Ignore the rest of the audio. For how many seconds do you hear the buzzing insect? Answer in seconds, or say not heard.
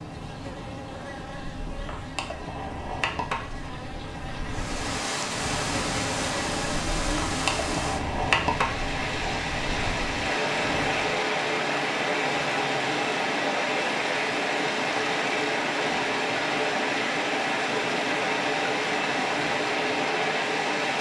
11 s.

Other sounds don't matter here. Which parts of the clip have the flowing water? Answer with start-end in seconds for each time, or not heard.
4.5-20.9.